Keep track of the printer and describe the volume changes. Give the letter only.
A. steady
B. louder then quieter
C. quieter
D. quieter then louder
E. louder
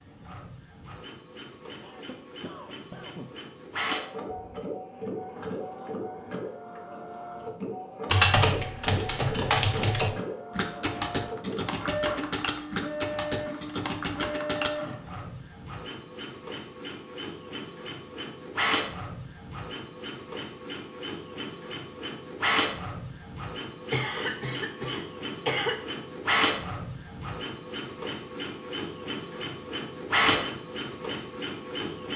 E.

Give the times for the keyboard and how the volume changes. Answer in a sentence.
The keyboard can be heard from 8.1 to 14.7 s, at a steady volume.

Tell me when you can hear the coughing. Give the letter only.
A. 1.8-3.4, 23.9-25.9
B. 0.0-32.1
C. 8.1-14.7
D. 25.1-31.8
A.